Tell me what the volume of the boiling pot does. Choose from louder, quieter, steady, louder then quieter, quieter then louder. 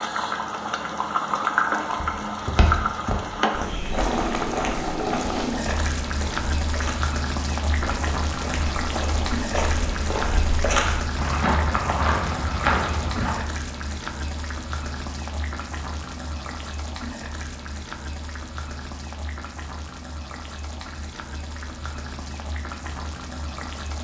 quieter.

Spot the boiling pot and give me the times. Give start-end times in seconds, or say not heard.
0.0-23.9.